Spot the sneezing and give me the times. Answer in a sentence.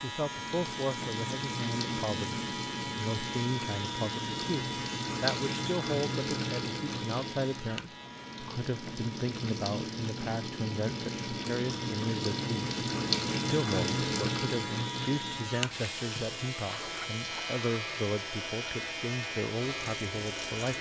The sneezing can't be heard in this clip.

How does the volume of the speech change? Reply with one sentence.
The volume of the speech stays about the same.